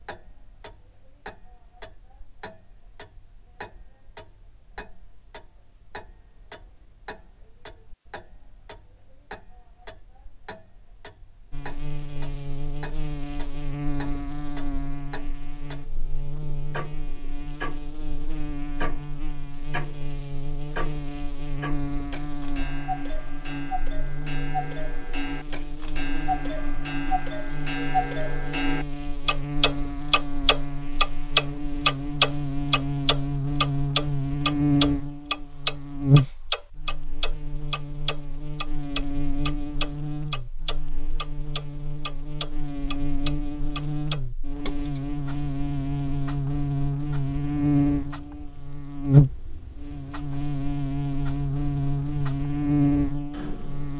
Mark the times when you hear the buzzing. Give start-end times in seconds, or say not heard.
11.5-53.9.